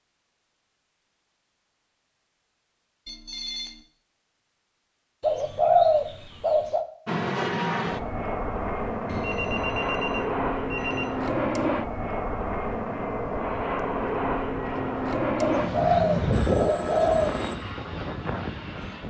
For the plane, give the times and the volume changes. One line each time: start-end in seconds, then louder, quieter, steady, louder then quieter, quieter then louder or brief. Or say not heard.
7.0-19.0 steady.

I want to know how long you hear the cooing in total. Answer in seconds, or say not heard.
4 s.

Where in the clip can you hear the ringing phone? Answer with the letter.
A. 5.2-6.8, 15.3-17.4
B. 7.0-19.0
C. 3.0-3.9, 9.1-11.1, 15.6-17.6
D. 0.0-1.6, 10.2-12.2
C.